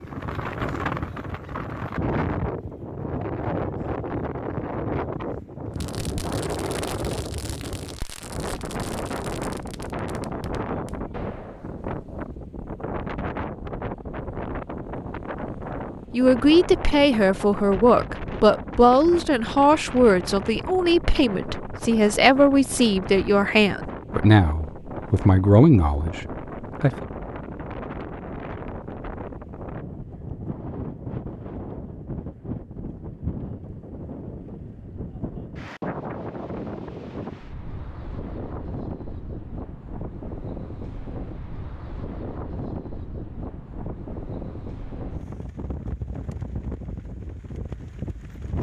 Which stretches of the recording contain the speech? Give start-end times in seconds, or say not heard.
16.1-27.1.